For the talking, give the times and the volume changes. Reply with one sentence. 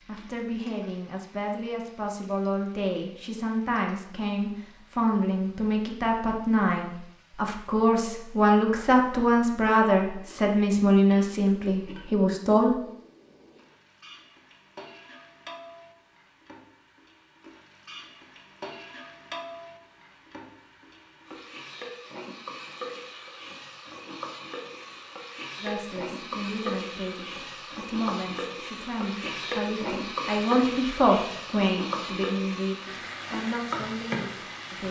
The talking can be heard from 0.1 to 12.8 s, getting louder; and from 25.6 to 34.8 s, getting louder then quieter.